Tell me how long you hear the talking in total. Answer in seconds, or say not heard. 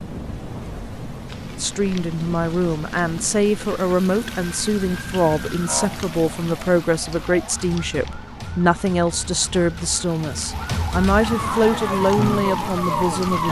12 s.